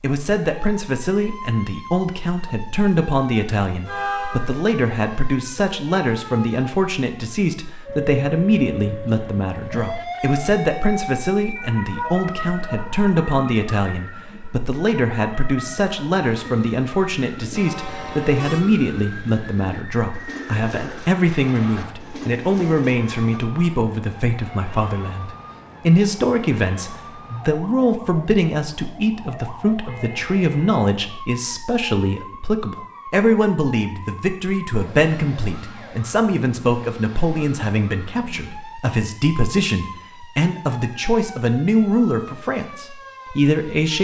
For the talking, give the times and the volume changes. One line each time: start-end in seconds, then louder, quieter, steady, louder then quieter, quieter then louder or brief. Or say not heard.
0.0-44.0 steady.